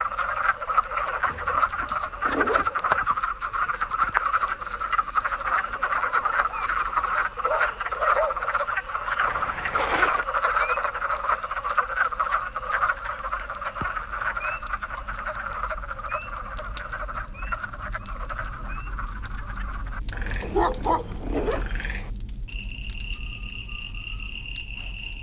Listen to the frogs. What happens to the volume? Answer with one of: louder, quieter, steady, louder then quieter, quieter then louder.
quieter.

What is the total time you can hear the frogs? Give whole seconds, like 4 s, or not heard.
25 s.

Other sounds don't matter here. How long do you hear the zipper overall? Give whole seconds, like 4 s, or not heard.
4 s.